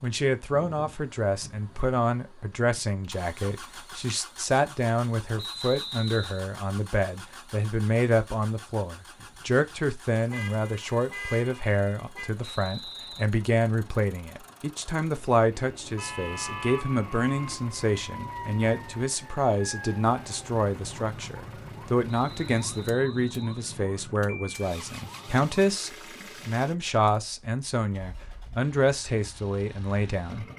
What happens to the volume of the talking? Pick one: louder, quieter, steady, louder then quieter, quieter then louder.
steady.